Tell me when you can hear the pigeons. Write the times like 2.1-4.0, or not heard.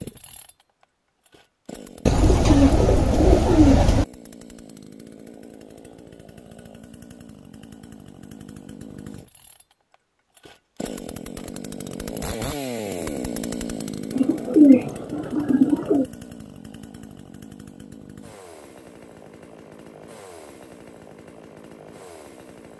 2.0-4.0, 14.2-16.1.